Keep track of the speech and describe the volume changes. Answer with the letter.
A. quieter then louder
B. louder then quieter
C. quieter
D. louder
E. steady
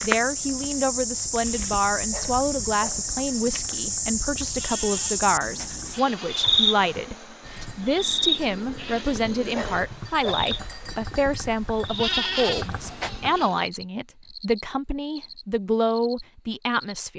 E.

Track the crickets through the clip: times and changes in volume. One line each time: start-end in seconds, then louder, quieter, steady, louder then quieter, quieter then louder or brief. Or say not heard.
0.0-17.0 quieter.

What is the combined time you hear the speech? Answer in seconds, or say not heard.
17 s.